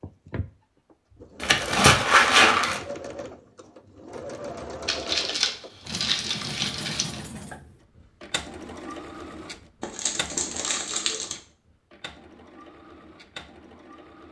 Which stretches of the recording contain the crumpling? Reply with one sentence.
You can hear the crumpling from 1.4 to 2.8 s, from 4.8 to 7.2 s and from 9.8 to 11.3 s.